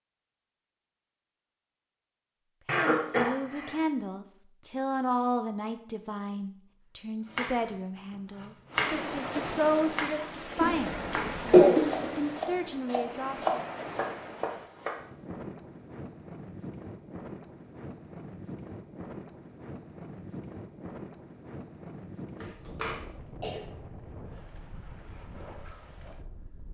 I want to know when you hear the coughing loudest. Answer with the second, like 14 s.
12 s.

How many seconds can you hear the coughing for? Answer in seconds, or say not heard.
4 s.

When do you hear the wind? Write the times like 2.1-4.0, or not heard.
8.7-26.6.